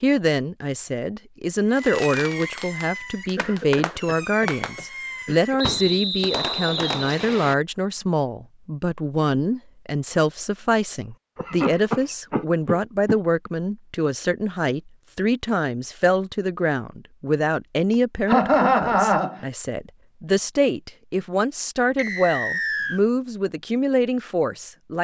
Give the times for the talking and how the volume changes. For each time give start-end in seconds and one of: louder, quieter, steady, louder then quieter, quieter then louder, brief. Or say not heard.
0.0-24.9 steady.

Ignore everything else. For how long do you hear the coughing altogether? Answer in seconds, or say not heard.
6 s.